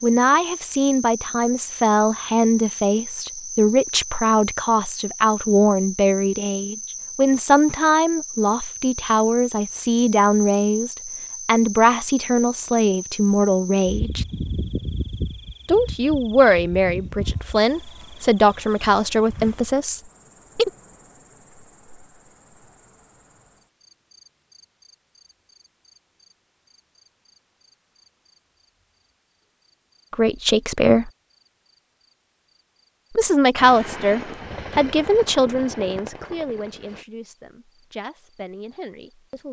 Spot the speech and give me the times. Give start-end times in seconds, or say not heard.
0.0-14.2, 15.7-20.7, 30.1-31.1, 33.1-39.4.